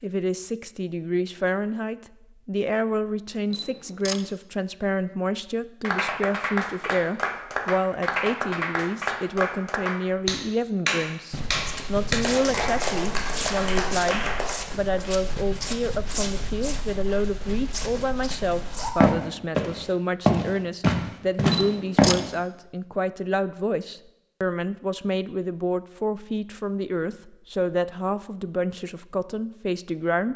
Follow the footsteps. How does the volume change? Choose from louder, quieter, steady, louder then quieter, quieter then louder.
louder.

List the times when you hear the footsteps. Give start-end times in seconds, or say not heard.
11.3-22.2.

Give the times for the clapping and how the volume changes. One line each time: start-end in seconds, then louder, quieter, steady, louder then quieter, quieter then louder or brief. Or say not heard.
5.8-14.7 steady.